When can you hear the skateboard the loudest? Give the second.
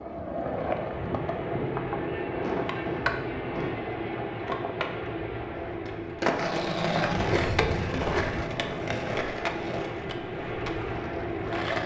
7 s.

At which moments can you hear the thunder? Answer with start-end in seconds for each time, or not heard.
7.2-8.4.